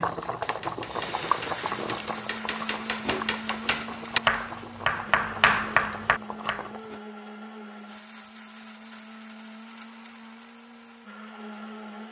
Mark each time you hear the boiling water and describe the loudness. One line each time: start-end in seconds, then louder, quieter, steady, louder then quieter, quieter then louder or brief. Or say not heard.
0.0-7.0 quieter.